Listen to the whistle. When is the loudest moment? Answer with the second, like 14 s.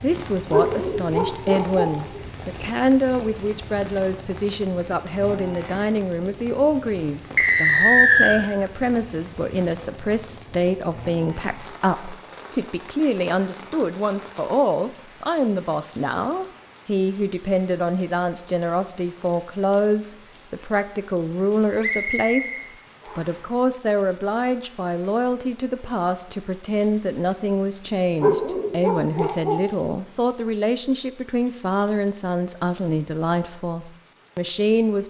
8 s.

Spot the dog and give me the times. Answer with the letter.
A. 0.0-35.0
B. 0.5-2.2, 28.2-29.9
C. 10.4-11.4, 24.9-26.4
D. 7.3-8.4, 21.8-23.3
B.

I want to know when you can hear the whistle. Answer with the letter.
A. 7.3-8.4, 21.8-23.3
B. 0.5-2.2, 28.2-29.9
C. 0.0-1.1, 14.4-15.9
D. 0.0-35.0
A.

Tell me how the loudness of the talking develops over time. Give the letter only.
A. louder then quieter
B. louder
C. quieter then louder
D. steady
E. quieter
D.